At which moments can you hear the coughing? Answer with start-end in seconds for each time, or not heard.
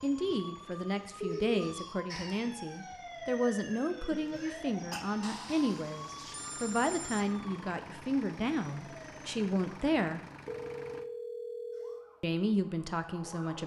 4.1-5.0.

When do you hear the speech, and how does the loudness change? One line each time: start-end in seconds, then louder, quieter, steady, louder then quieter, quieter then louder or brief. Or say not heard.
0.0-10.2 steady
12.2-13.6 brief.